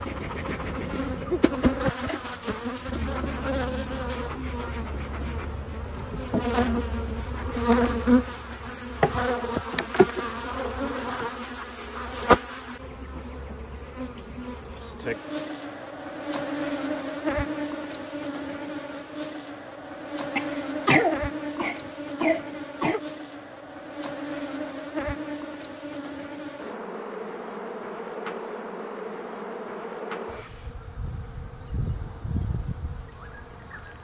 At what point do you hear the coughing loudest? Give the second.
21 s.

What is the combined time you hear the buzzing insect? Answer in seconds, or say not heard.
34 s.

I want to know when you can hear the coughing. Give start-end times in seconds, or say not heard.
20.4-23.0.